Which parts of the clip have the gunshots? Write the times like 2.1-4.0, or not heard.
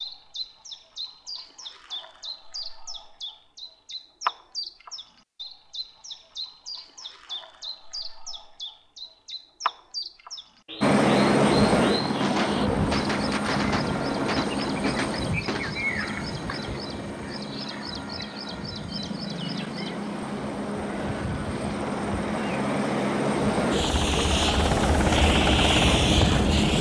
12.2-15.9.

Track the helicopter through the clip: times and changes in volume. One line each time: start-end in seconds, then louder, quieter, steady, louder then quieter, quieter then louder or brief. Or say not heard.
10.8-26.7 quieter then louder.